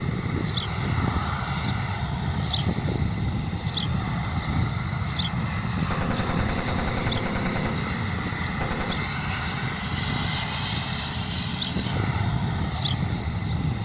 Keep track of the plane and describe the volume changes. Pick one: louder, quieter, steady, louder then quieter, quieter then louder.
steady.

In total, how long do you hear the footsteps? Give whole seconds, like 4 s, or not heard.
not heard.